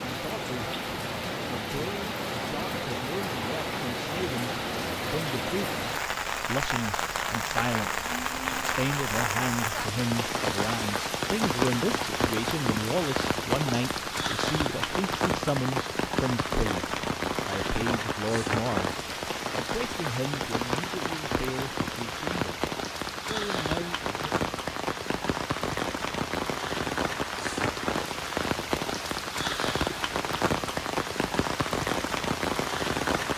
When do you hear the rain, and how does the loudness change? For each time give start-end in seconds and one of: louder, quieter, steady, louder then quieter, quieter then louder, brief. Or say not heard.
0.0-33.3 steady.